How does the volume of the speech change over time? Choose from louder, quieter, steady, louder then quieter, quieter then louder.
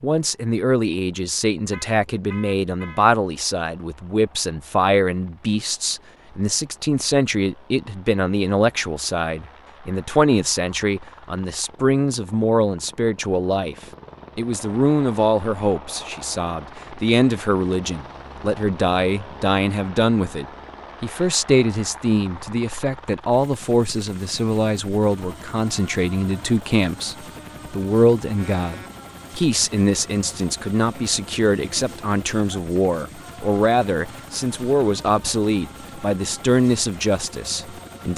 steady.